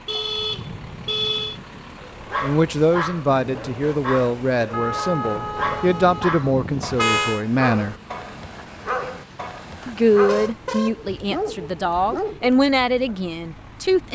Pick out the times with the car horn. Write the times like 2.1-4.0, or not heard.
0.1-1.6, 4.7-7.5, 9.8-10.9.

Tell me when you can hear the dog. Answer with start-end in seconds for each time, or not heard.
1.9-13.2.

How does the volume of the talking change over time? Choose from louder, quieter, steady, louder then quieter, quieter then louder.
steady.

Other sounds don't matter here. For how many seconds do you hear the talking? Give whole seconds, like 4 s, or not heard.
10 s.